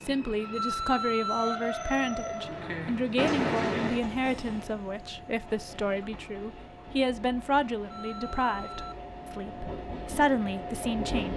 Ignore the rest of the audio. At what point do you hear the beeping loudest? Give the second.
1 s.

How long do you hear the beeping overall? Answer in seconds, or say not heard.
2 s.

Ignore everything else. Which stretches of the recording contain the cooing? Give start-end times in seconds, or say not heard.
not heard.